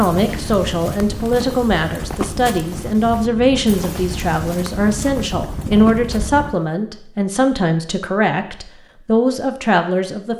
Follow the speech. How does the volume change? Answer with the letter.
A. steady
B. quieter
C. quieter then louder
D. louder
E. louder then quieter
A.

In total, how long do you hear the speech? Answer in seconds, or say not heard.
10 s.